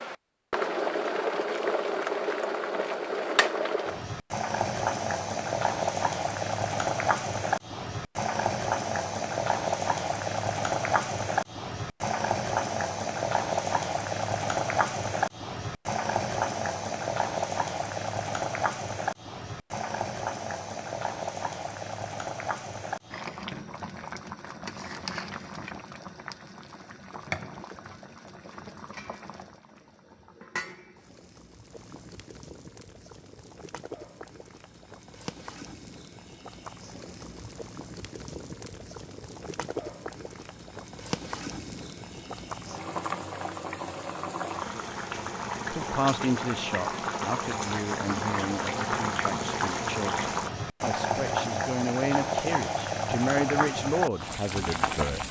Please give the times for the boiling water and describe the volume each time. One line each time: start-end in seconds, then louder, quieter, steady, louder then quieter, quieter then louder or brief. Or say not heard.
0.0-55.2 quieter then louder.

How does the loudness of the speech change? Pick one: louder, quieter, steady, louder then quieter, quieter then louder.
quieter then louder.